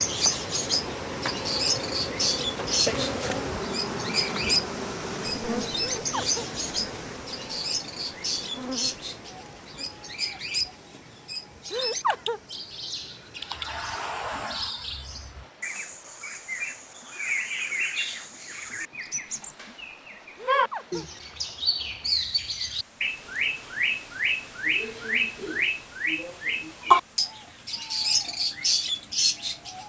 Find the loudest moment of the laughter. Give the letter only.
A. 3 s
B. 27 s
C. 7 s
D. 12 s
D.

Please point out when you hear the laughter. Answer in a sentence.
You can hear the laughter from 6.0 to 6.5 s, from 11.7 to 12.4 s and from 20.4 to 21.1 s.